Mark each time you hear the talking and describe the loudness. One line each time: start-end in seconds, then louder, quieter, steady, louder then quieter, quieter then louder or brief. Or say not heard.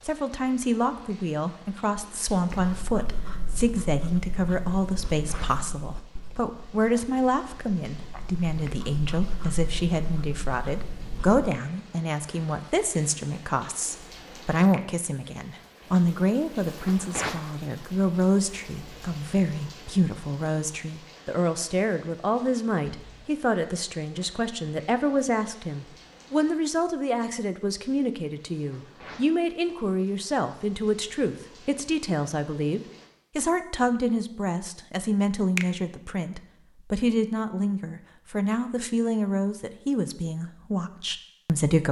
0.1-41.8 steady.